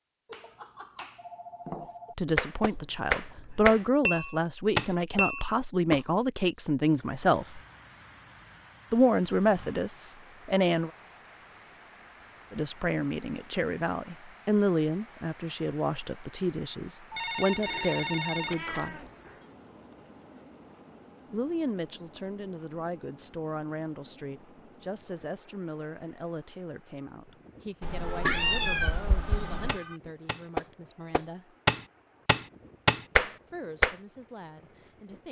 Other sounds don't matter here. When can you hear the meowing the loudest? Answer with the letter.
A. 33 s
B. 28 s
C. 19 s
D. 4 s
B.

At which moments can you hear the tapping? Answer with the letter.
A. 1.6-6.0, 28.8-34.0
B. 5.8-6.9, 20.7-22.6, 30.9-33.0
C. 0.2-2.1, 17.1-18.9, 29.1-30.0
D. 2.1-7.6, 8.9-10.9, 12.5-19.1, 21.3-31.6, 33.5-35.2
A.